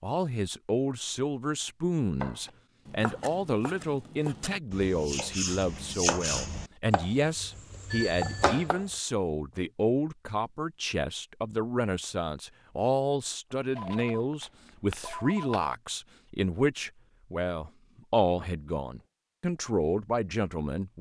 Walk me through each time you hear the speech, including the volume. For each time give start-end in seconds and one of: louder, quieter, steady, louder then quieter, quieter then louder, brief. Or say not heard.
0.0-20.9 steady.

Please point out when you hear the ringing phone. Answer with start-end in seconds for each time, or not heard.
7.9-8.4, 13.8-15.8.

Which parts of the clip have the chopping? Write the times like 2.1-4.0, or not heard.
2.2-8.8.